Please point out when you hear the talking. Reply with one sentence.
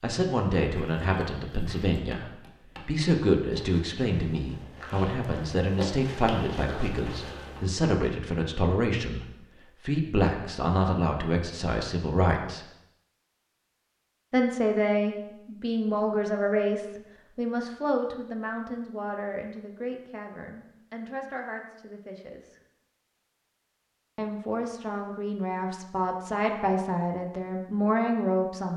You can hear the talking from 0.0 to 12.7 s, from 14.3 to 22.6 s and from 24.1 to 28.7 s.